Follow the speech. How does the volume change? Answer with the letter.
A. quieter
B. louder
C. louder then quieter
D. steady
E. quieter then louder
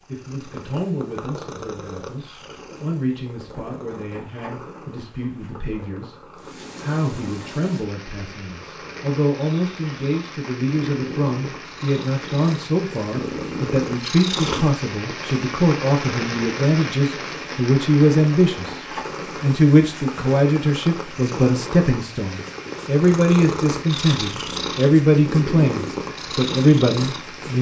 B.